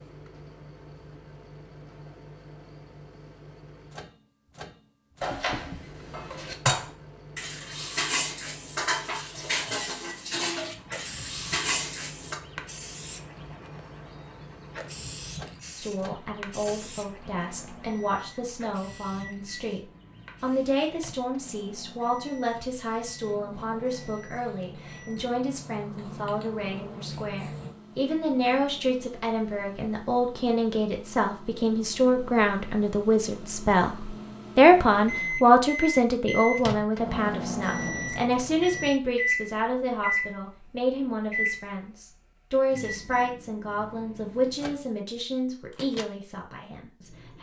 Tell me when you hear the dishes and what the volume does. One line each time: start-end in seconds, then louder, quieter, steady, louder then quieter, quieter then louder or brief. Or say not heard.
5.2-12.3 steady.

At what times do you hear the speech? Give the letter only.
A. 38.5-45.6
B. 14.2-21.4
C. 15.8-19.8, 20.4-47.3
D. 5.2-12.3
C.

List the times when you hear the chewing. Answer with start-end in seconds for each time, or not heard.
not heard.